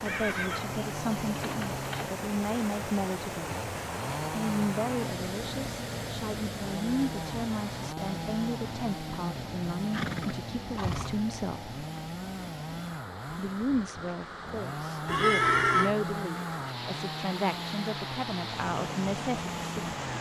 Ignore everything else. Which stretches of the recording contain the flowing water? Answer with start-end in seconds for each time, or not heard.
0.0-20.1.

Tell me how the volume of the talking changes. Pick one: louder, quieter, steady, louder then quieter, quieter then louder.
steady.